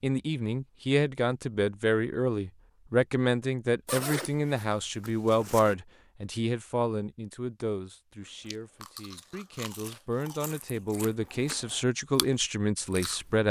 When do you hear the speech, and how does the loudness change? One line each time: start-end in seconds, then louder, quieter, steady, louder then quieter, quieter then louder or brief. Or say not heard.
0.0-13.4 quieter then louder.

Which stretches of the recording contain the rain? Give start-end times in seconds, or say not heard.
not heard.